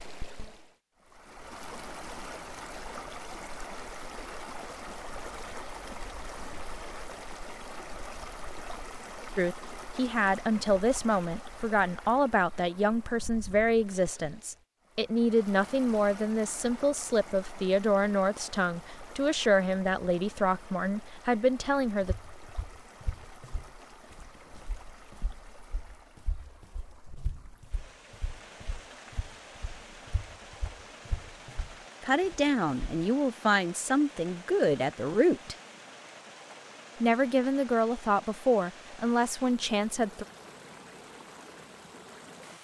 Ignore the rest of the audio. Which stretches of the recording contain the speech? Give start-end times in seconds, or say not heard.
9.3-22.1, 32.0-35.5, 37.0-40.2.